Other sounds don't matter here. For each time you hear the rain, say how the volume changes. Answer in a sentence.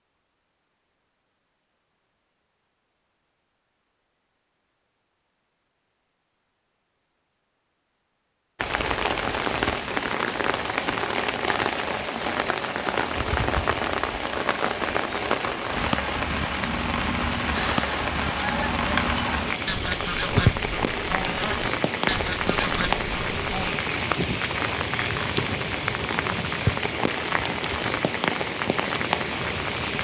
You can hear the rain from 8.6 to 29.9 s, at a steady volume.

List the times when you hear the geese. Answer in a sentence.
The geese can be heard from 17.5 to 23.8 s.